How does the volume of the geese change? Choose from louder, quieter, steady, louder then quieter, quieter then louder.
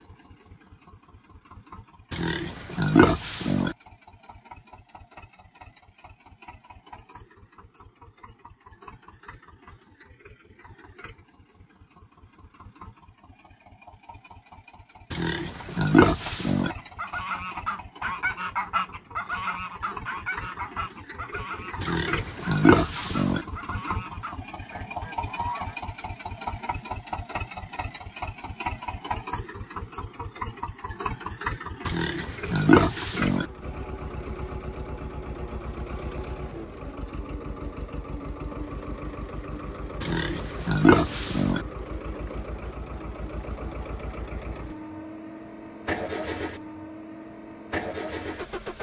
quieter.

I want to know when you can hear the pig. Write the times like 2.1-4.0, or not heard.
2.1-3.8, 15.1-16.8, 21.8-23.4, 31.9-33.5, 40.0-41.6.